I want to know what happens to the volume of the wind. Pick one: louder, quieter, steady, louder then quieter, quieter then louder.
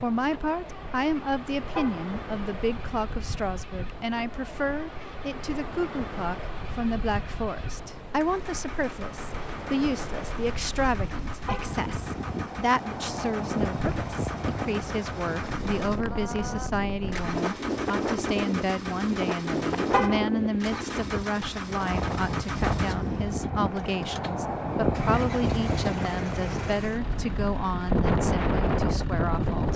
louder.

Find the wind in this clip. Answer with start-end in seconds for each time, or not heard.
0.0-29.7.